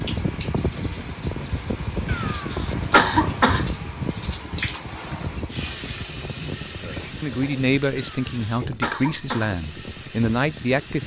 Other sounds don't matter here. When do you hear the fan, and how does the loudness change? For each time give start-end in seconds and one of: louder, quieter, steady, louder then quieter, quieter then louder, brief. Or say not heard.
0.0-11.0 quieter.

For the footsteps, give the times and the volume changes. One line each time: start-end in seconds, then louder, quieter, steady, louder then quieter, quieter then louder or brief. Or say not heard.
not heard.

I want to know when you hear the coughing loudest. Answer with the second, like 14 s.
3 s.